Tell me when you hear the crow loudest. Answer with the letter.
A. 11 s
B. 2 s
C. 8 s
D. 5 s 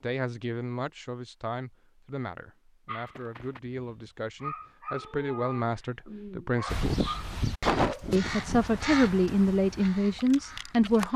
C.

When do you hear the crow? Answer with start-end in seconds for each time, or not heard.
6.7-11.1.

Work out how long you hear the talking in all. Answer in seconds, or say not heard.
10 s.